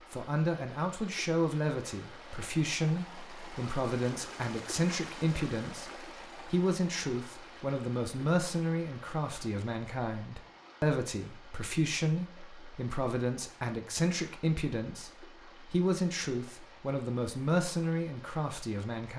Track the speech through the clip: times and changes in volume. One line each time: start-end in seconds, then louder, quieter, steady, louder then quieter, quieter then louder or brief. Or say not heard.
0.1-19.1 steady.